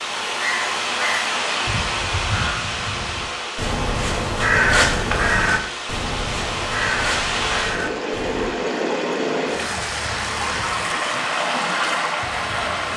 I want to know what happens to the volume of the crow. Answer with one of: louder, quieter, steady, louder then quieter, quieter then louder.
louder then quieter.